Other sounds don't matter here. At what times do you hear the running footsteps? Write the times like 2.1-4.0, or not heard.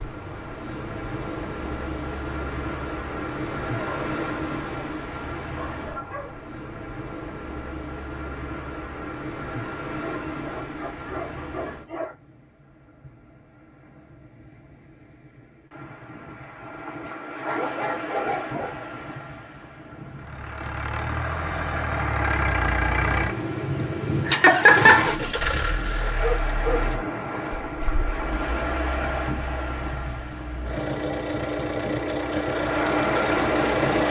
not heard.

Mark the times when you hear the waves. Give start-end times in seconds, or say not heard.
0.0-34.0.